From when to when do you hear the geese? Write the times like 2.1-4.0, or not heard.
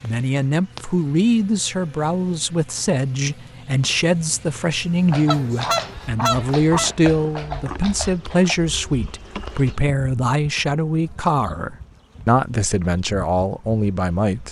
5.3-6.9.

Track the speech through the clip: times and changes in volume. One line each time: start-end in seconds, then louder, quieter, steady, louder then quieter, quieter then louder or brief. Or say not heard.
0.0-14.4 steady.